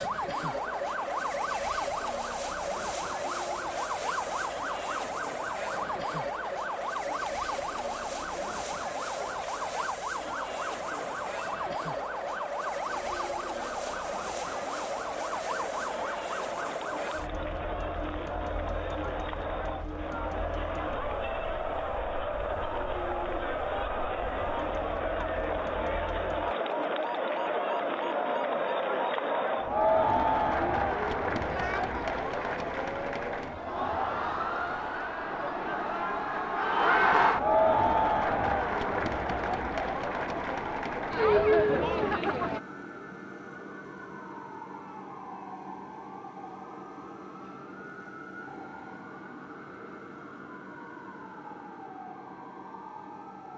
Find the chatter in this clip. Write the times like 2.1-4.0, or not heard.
0.1-42.6.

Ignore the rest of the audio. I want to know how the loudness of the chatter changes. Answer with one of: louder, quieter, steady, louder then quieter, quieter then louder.
louder.